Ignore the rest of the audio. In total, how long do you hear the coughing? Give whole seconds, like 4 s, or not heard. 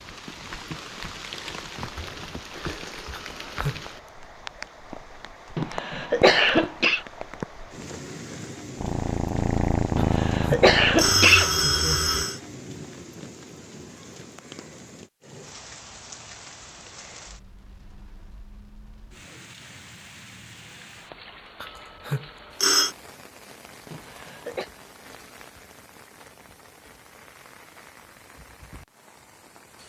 4 s.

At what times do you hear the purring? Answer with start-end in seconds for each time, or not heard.
8.8-12.2.